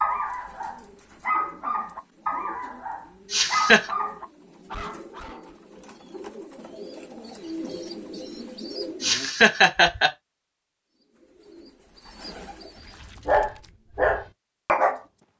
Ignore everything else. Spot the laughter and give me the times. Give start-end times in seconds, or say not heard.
3.3-3.9, 9.0-10.1.